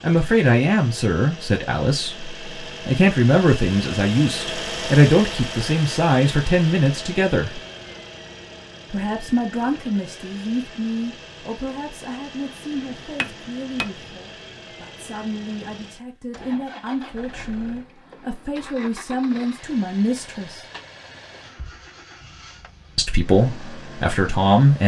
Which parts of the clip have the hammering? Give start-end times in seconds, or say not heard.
12.8-14.2.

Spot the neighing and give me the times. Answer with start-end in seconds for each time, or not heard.
not heard.